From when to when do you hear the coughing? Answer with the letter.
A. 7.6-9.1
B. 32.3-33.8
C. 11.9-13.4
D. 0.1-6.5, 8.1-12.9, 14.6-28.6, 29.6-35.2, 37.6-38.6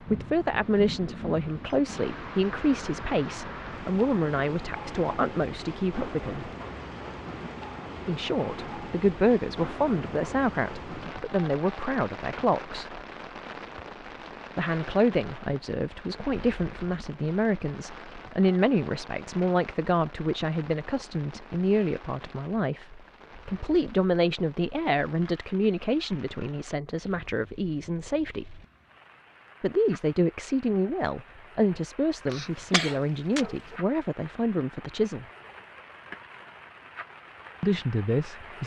B.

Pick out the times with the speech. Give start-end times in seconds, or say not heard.
0.1-6.5, 8.1-12.9, 14.6-28.6, 29.6-35.2, 37.6-38.6.